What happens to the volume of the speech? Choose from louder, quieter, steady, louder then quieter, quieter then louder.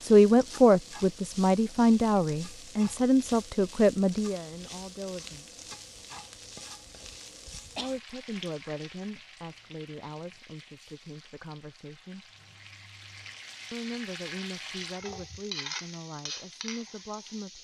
quieter.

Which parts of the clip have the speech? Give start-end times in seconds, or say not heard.
0.0-5.6, 7.8-12.2, 13.7-17.5.